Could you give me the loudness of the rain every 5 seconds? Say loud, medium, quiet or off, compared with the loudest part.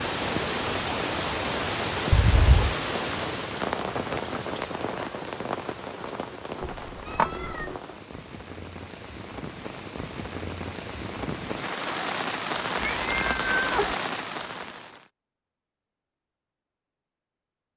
loud, medium, loud, off.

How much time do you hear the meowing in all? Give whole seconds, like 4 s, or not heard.
3 s.